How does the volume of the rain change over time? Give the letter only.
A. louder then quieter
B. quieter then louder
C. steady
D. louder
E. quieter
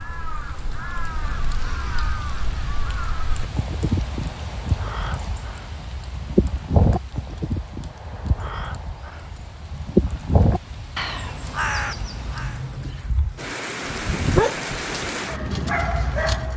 B.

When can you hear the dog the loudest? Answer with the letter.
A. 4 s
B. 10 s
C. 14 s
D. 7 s
C.